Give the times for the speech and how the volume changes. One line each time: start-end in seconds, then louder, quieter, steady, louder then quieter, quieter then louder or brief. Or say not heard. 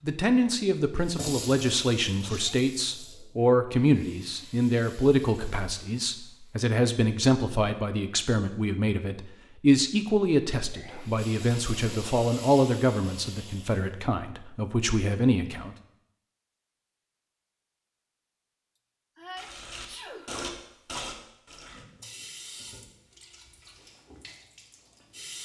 0.0-15.8 steady.